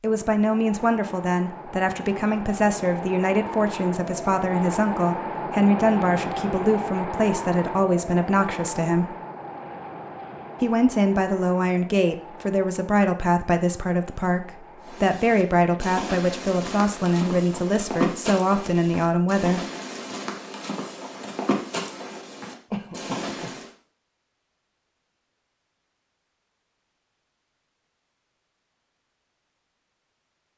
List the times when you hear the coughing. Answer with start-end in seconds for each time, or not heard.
22.7-23.6.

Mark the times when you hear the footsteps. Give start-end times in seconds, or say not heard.
14.8-23.7.